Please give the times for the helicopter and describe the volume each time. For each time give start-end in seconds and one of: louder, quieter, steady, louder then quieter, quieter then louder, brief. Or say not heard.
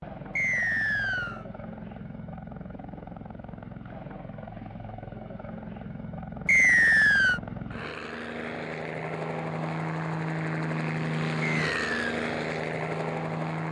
0.0-13.6 louder.